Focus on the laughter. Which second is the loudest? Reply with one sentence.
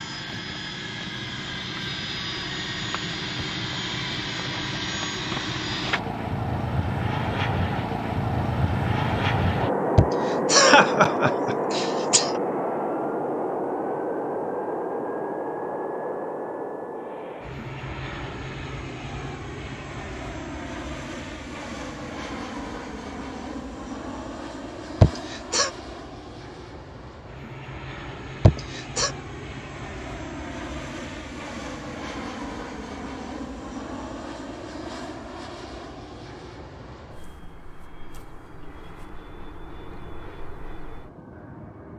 The volume of the laughter peaks at 11 seconds.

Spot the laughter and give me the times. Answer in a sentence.
The laughter can be heard from 9.9 to 12.4 s, from 25.0 to 25.7 s and from 28.4 to 29.1 s.